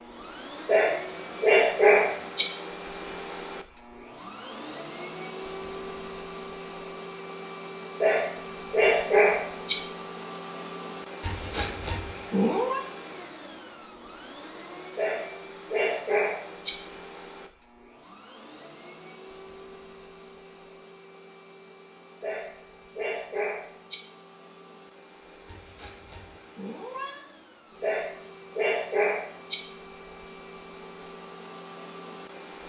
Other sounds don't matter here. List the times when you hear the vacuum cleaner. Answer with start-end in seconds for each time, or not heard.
0.0-32.6.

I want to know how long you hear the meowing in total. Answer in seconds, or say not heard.
3 s.